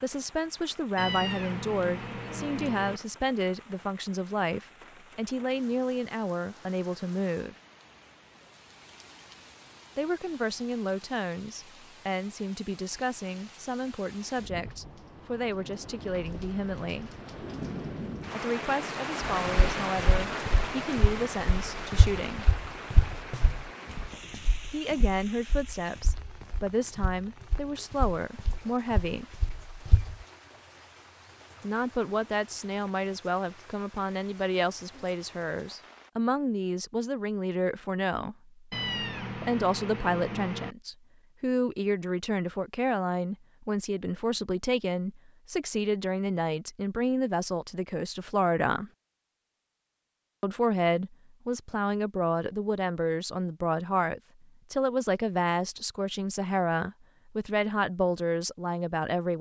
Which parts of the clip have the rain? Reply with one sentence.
The rain can be heard from 0.0 to 36.1 s.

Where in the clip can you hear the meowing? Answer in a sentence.
You can hear the meowing from 0.9 to 3.0 s and from 38.7 to 40.8 s.